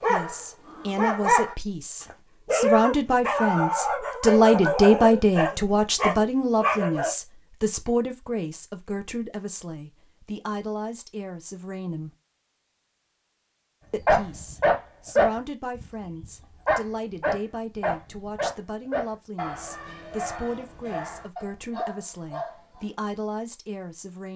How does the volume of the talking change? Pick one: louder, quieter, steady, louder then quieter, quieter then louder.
quieter.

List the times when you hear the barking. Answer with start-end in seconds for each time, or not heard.
0.0-7.2, 14.1-22.9.